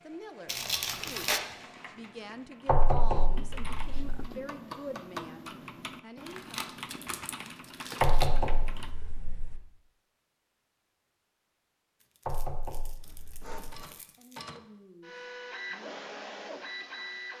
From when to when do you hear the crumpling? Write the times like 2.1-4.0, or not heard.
0.5-1.4, 6.2-8.3, 12.0-14.4.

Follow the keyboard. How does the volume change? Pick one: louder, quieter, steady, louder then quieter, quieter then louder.
louder.